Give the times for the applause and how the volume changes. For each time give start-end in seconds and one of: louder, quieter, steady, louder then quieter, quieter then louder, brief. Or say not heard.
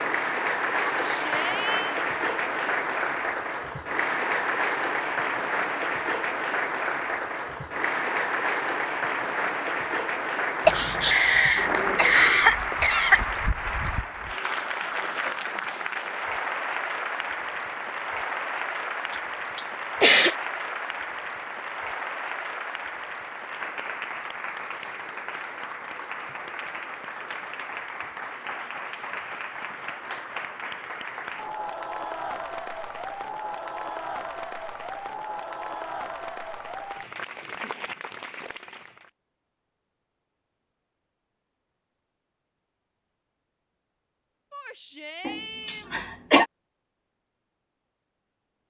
0.0-39.1 quieter.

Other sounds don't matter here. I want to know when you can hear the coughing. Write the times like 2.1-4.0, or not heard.
10.7-13.2, 19.1-20.4, 45.2-46.5.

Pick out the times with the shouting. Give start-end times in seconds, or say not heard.
0.9-1.9, 44.5-46.0.